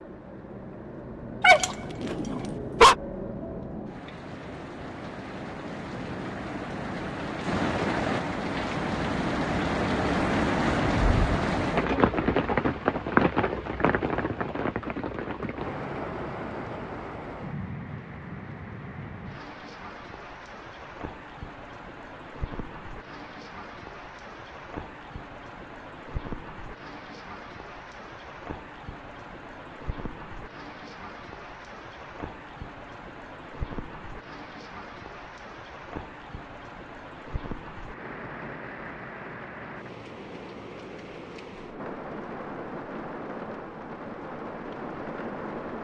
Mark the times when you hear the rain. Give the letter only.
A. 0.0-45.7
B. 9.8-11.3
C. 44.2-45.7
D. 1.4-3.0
A.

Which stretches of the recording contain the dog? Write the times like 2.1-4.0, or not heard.
1.4-3.0.